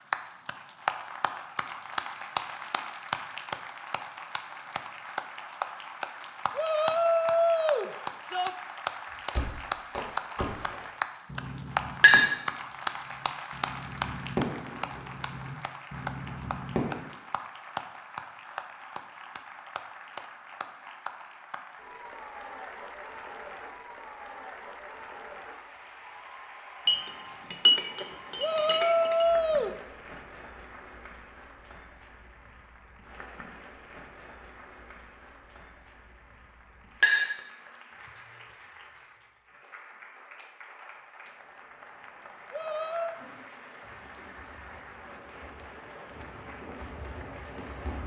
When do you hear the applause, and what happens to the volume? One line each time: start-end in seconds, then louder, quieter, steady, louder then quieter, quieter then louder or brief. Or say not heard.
0.0-48.0 quieter.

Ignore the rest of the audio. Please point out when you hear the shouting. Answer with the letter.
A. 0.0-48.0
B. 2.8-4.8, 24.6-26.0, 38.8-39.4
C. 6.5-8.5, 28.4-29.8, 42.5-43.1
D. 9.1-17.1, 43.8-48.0
C.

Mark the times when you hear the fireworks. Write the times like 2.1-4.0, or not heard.
9.1-17.1, 43.8-48.0.